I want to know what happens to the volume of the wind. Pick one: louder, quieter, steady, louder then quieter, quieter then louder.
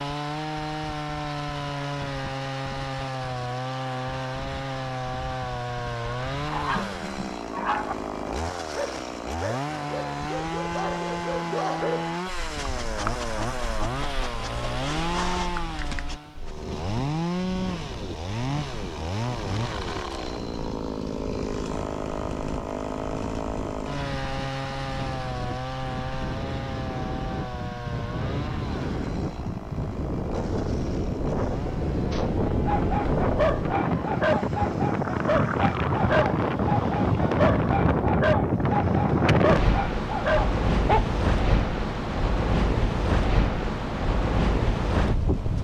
louder.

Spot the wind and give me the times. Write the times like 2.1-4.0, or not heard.
16.2-45.5.